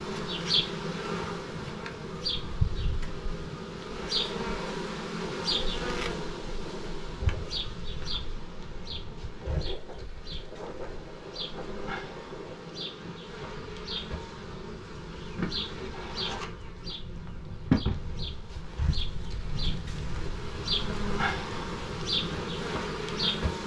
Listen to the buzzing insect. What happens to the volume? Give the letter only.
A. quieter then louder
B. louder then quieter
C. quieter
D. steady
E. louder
A.